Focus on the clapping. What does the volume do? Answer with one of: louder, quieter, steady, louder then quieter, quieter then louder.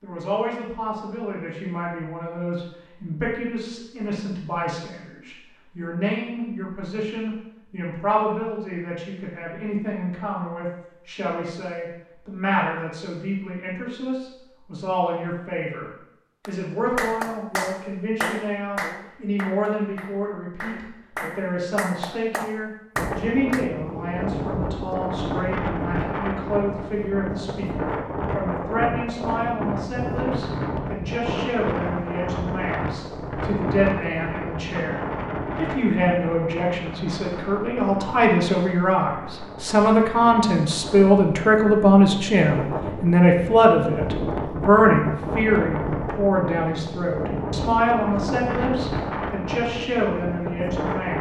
quieter then louder.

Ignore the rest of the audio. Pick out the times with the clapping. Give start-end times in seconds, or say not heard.
16.4-23.7.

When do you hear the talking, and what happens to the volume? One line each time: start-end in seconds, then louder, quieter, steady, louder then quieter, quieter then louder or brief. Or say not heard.
0.0-51.1 louder.